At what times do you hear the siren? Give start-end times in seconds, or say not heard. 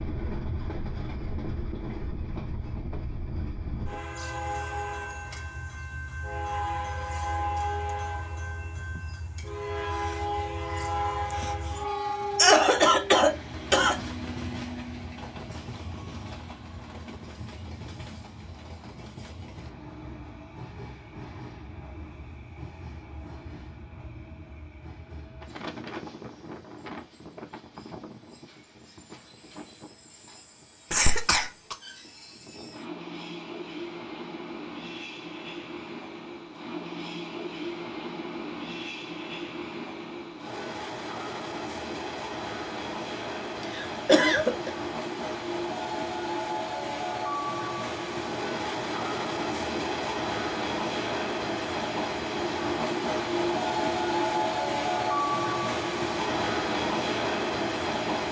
not heard.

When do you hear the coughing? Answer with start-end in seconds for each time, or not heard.
12.3-13.9, 30.9-31.8, 43.8-44.7.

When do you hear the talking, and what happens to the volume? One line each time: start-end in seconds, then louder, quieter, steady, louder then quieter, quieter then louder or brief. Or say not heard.
not heard.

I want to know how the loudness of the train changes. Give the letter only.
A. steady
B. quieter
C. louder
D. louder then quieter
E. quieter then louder
E.